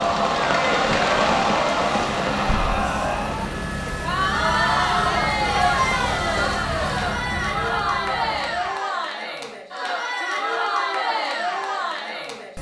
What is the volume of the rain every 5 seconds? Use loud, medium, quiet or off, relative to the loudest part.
loud, medium, off.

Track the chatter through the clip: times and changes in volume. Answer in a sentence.
The chatter can be heard from 0.0 to 12.5 s, at a steady volume.